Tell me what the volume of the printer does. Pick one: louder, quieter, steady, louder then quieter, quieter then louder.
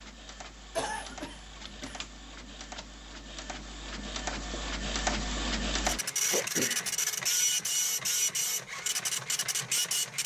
louder.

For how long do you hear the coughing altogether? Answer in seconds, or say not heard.
2 s.